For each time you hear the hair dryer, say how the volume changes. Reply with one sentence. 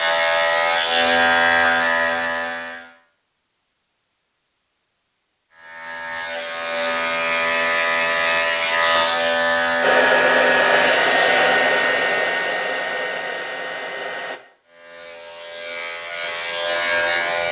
You can hear the hair dryer from 9.8 to 14.4 s, getting quieter.